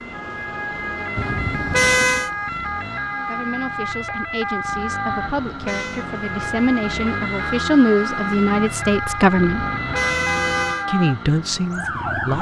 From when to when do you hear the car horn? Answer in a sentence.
You can hear the car horn from 1.1 to 2.3 s, from 5.0 to 6.0 s and from 9.3 to 10.8 s.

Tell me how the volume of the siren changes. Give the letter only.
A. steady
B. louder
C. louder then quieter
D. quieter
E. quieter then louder
A.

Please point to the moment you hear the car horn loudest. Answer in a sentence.
The volume of the car horn peaks at 2 seconds.